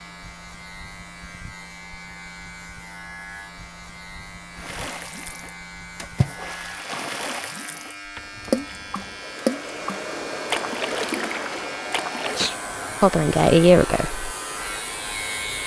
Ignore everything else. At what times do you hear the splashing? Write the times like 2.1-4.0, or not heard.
4.5-12.6.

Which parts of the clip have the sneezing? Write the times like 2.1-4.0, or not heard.
12.2-13.1.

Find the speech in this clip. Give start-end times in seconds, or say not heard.
13.0-14.2.